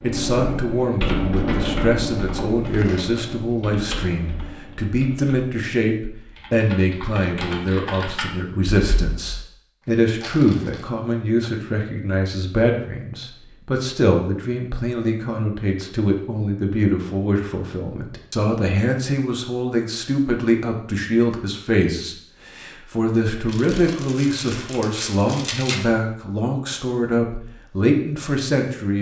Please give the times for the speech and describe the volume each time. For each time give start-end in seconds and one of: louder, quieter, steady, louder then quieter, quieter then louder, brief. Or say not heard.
0.0-28.9 steady.